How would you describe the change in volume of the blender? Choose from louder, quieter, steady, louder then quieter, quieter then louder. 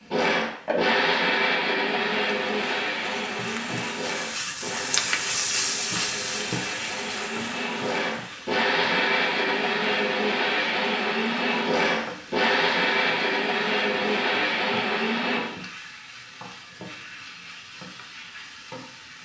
quieter then louder.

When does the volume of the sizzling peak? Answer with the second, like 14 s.
5 s.